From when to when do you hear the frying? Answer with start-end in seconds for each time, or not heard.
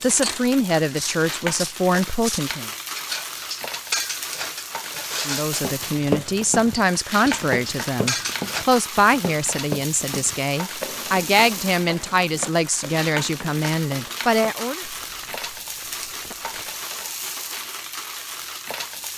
0.0-19.1.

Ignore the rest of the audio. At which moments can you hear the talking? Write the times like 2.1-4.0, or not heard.
0.0-2.7, 5.2-14.8.